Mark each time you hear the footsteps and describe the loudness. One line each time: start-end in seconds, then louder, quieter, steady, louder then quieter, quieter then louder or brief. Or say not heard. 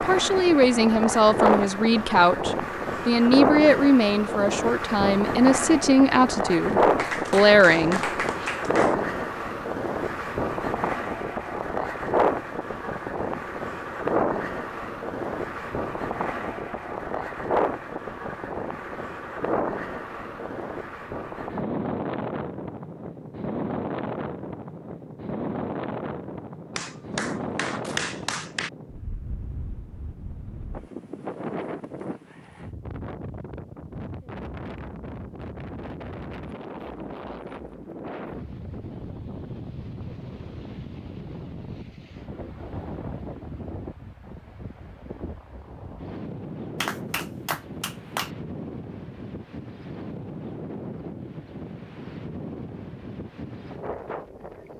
not heard.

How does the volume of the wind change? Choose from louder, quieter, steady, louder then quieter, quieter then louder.
quieter.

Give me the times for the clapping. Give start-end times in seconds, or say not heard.
7.0-8.9, 26.8-28.7, 46.8-48.3.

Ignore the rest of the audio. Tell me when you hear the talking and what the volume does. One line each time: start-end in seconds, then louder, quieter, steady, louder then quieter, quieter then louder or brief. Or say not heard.
0.0-8.4 steady.